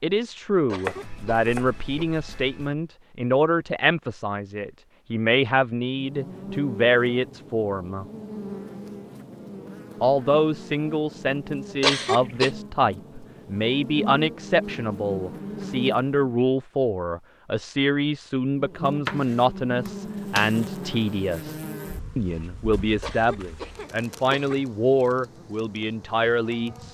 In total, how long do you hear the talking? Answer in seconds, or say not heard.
25 s.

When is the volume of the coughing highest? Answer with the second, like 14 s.
12 s.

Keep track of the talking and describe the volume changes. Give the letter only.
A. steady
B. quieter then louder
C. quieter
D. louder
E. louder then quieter
A.